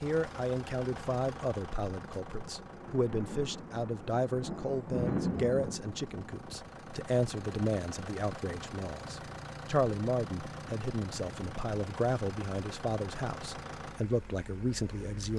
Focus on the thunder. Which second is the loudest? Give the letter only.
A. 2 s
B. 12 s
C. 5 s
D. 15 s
C.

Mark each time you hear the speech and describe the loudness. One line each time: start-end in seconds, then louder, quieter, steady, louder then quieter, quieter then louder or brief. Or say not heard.
0.0-15.3 steady.